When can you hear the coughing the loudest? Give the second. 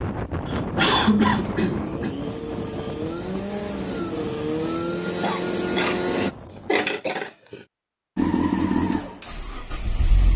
1 s.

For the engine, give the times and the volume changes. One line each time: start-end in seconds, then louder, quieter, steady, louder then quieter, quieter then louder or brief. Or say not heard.
0.0-6.3 louder
8.2-10.3 brief.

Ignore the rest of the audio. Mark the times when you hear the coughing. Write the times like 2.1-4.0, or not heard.
0.5-2.1, 5.2-7.7.